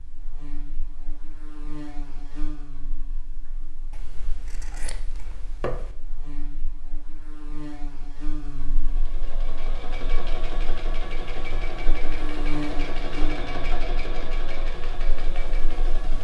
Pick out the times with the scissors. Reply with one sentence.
The scissors can be heard from 3.9 to 6.0 s.